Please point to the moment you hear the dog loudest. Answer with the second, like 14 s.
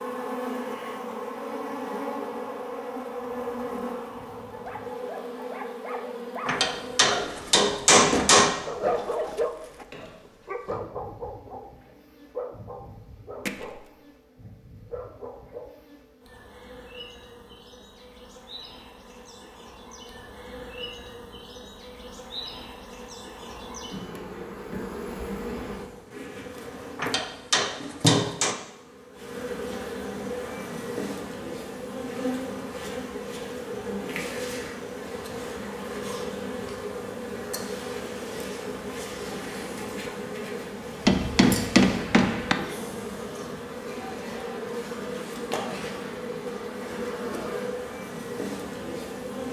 9 s.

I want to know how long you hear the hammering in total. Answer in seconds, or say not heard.
6 s.